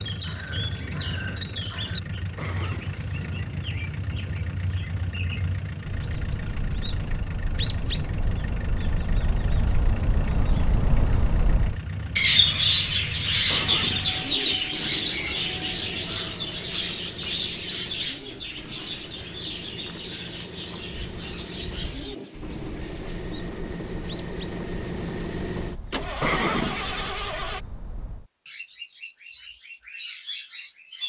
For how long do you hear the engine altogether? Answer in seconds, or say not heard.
28 s.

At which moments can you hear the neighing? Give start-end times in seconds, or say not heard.
2.4-3.1, 13.4-14.2, 26.2-27.1.